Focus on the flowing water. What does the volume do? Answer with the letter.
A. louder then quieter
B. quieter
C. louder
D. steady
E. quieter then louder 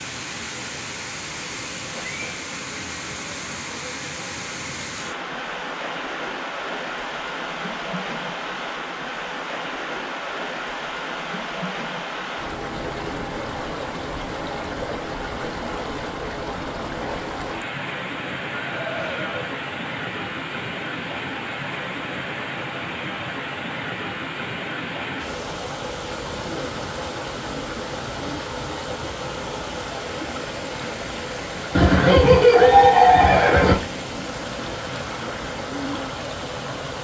D.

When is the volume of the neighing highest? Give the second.
33 s.